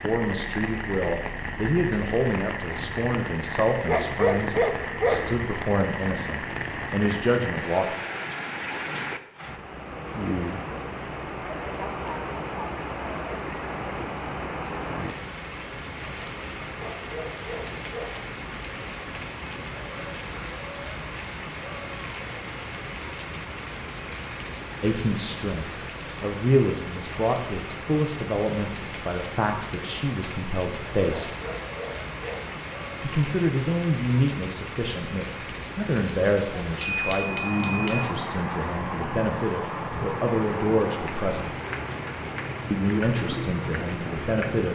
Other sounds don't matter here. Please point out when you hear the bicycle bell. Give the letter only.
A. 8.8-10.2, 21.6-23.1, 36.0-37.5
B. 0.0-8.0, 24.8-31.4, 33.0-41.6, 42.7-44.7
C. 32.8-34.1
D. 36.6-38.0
D.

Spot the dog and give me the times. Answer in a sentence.
The dog can be heard from 3.9 to 5.3 s, from 16.8 to 18.2 s and from 31.1 to 32.5 s.